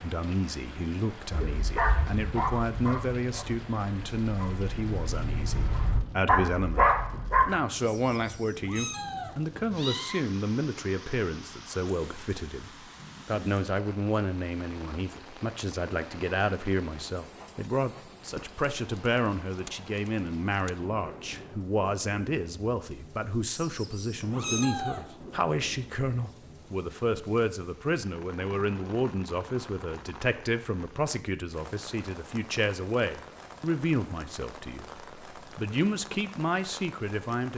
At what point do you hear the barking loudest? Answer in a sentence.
The loudest moment of the barking is at 7 seconds.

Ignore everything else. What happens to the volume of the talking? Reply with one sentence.
The loudness of the talking stays about the same.